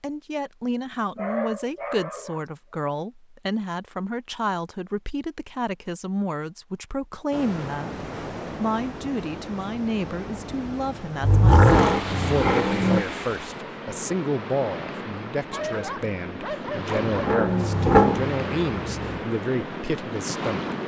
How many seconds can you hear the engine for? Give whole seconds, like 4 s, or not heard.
4 s.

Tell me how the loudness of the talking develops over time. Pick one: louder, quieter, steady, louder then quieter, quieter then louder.
steady.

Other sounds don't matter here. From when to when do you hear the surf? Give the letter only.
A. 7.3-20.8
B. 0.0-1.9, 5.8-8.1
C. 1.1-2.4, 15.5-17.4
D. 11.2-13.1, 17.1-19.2
A.